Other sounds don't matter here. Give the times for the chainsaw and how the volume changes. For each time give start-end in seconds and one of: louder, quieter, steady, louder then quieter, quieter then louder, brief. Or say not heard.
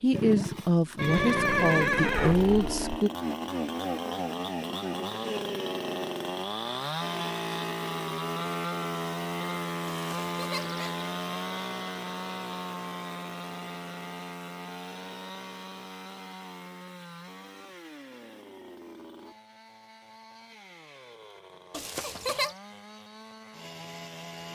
0.0-24.5 quieter.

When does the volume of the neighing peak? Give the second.
2 s.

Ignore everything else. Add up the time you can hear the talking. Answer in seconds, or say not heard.
3 s.